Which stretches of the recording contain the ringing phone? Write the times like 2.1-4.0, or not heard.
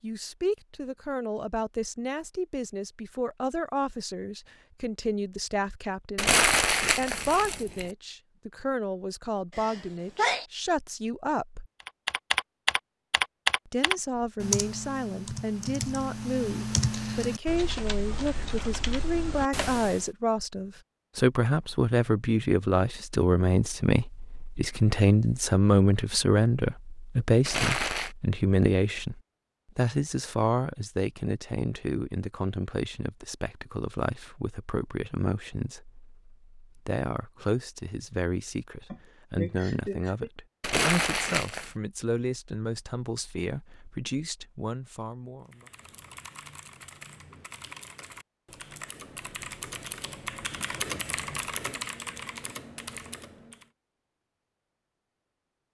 not heard.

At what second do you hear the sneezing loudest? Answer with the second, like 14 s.
10 s.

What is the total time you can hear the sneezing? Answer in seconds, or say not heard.
2 s.